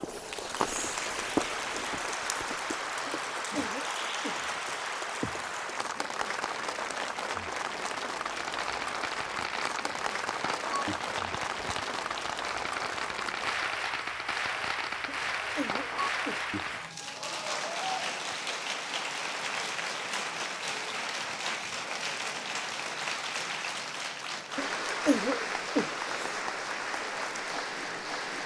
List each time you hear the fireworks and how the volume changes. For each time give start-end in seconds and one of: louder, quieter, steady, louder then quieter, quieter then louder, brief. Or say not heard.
8.3-16.9 steady.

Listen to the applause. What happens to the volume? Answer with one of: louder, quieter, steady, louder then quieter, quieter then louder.
steady.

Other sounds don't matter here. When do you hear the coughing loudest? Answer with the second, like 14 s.
25 s.